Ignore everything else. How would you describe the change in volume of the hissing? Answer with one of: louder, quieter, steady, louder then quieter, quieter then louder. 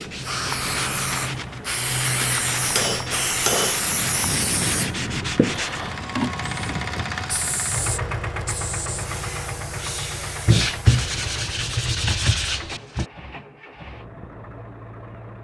quieter.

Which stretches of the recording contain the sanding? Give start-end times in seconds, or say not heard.
0.0-5.8, 10.4-13.1.